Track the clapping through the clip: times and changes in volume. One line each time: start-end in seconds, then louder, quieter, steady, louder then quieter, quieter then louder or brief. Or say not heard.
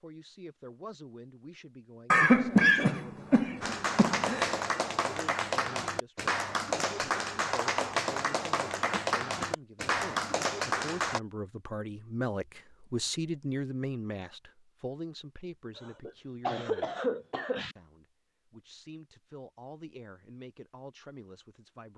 3.6-11.2 steady.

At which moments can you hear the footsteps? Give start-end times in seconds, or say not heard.
not heard.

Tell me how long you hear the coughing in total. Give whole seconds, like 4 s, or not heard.
5 s.